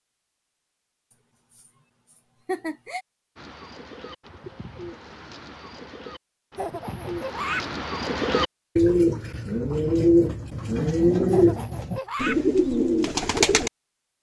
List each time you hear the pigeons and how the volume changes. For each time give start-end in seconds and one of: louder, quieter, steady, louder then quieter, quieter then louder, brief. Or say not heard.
3.4-13.7 louder.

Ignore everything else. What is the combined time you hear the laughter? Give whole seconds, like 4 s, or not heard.
4 s.